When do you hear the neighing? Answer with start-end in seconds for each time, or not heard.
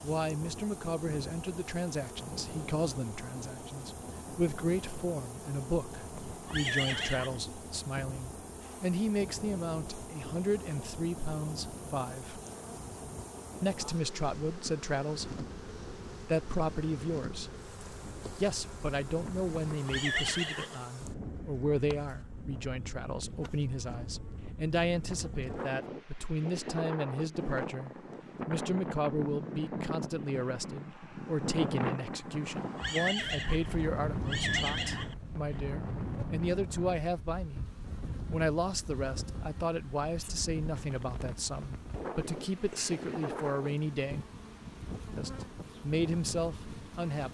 6.1-7.4, 19.7-20.9, 32.4-35.1.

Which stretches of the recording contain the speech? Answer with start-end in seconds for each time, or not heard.
0.0-12.4, 13.6-15.4, 16.2-17.5, 18.4-37.6, 38.2-44.2, 45.1-47.2.